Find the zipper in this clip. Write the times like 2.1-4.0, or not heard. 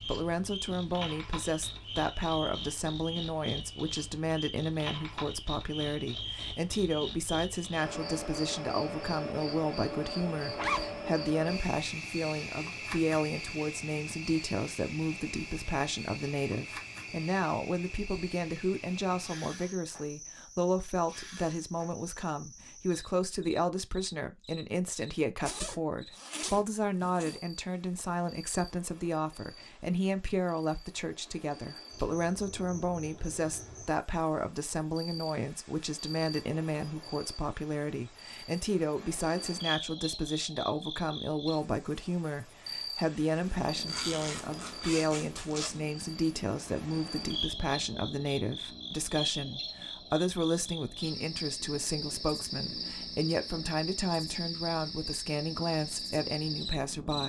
10.4-11.0, 25.4-27.4, 43.9-45.8.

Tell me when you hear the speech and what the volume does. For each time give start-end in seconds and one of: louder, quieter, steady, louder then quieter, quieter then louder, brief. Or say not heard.
0.0-57.2 steady.